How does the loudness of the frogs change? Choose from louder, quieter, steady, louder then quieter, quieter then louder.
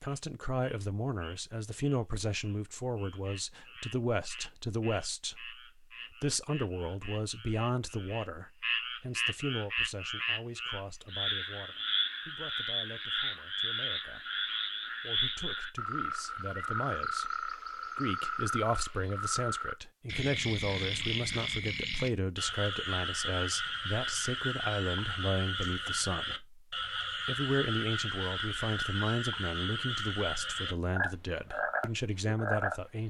louder.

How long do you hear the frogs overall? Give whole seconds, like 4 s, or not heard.
33 s.